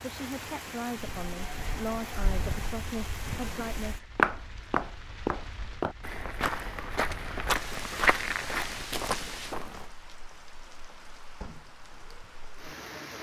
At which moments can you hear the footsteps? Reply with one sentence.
The footsteps can be heard from 0.9 to 9.9 s.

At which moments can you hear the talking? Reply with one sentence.
The talking can be heard from 0.0 to 4.1 s.